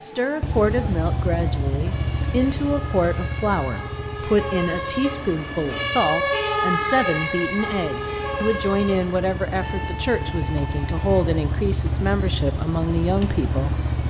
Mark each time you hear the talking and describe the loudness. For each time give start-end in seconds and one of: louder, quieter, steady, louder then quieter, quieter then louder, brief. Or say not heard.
0.0-13.8 steady.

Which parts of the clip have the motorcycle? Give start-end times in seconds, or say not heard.
0.0-14.0.